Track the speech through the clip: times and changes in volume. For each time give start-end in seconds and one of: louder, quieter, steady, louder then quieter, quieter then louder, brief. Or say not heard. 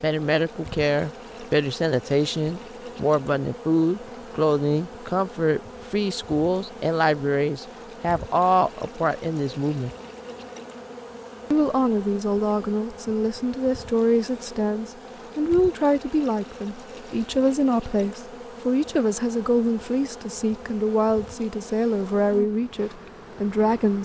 0.0-9.9 steady
11.5-23.9 steady.